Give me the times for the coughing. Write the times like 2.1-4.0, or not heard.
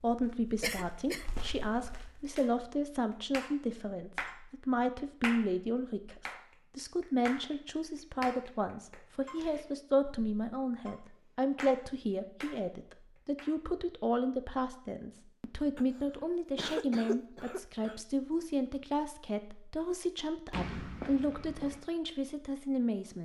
0.6-1.3, 15.8-17.9.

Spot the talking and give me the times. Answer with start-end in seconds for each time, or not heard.
0.0-23.2.